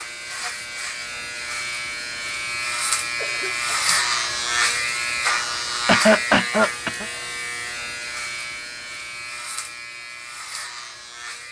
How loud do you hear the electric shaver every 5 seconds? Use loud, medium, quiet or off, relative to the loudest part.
loud, loud, medium.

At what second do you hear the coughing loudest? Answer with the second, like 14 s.
6 s.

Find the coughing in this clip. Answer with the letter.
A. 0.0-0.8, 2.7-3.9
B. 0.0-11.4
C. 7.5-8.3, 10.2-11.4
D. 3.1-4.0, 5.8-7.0
D.